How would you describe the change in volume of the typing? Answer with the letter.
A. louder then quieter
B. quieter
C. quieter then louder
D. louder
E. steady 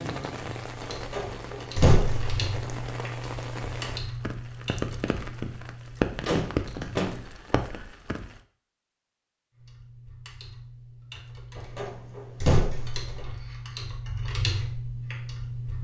C.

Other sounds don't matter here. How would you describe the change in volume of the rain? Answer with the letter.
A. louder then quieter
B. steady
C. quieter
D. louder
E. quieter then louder
D.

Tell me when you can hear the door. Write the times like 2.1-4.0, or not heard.
0.9-2.4, 6.2-7.2, 11.6-13.3.